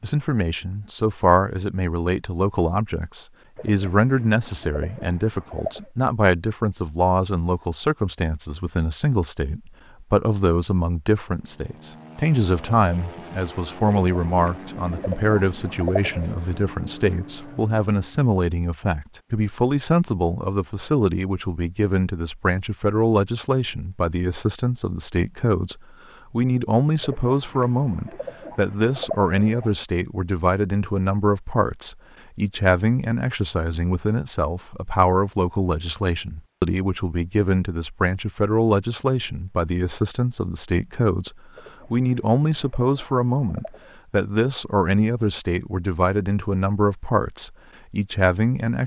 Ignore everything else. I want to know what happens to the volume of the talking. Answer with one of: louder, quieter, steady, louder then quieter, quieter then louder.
steady.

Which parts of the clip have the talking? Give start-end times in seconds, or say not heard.
0.0-48.8.